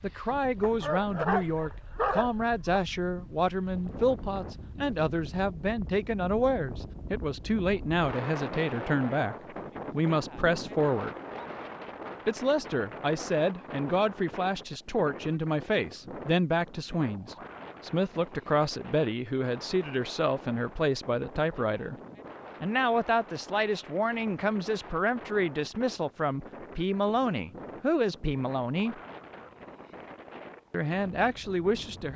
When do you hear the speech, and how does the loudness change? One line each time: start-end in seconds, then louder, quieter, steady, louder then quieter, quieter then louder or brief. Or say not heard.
0.0-11.2 steady
12.2-21.9 steady
22.6-29.0 steady
30.7-32.1 brief.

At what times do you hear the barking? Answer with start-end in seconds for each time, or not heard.
0.6-2.8.